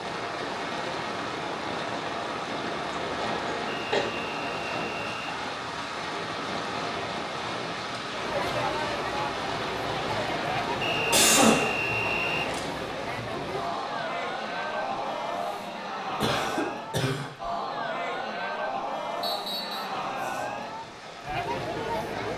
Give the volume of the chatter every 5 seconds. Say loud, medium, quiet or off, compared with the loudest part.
off, loud, loud, loud, loud.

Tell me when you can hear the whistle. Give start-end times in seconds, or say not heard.
3.6-5.3, 10.8-12.5, 19.2-19.9.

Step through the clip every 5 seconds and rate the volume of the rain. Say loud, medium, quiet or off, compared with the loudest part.
loud, loud, loud, quiet, medium.